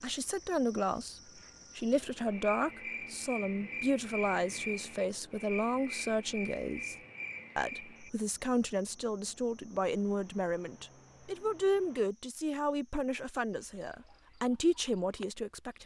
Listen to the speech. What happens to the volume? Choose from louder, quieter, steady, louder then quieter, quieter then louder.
steady.